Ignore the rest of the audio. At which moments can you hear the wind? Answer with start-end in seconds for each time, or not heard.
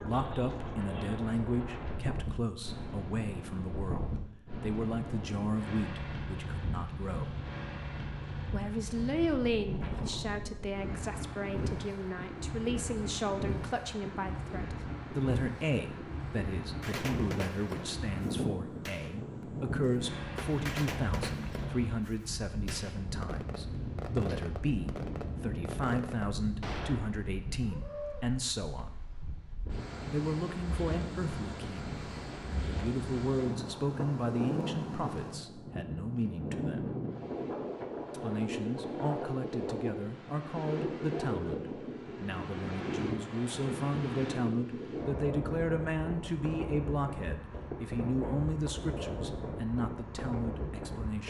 0.0-51.2.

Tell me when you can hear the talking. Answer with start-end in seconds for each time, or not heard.
0.0-7.3, 8.5-28.9, 30.1-37.0, 38.1-51.2.